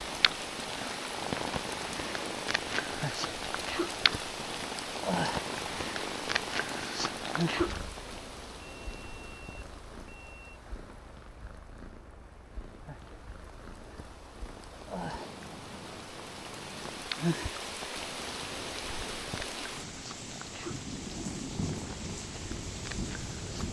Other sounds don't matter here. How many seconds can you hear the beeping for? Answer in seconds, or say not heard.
2 s.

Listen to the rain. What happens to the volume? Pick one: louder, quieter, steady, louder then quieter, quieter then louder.
quieter then louder.